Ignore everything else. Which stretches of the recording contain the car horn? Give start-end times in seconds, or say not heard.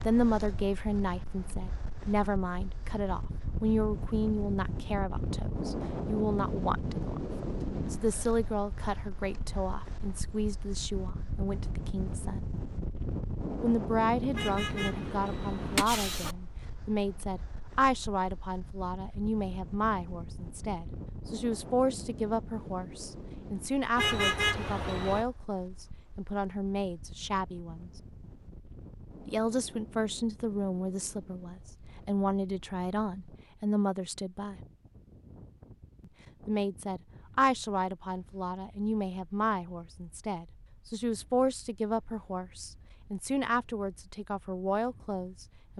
14.3-16.4, 23.9-25.2.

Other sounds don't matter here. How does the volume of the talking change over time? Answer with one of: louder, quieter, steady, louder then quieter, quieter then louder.
steady.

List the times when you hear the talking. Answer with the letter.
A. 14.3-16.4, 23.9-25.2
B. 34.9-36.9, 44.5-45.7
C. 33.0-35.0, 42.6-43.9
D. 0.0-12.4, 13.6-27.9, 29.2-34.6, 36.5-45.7
D.